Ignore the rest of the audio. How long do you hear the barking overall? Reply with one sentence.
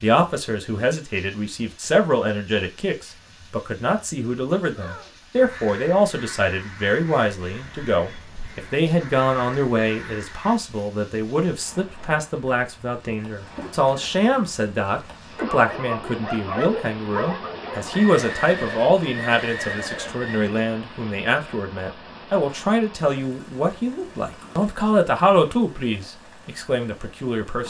You can hear the barking for 3 seconds altogether.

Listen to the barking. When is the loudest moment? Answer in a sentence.
The loudest moment of the barking is at 17 seconds.